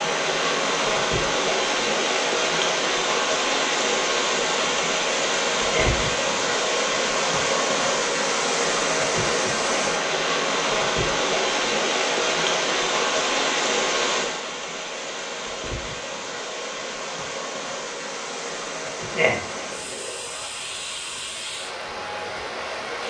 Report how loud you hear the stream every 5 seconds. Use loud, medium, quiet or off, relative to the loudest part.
loud, loud, loud, medium, medium.